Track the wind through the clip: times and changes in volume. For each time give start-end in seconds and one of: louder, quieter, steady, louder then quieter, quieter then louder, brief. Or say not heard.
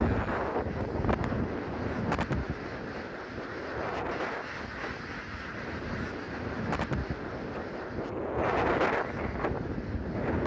0.0-10.4 quieter then louder.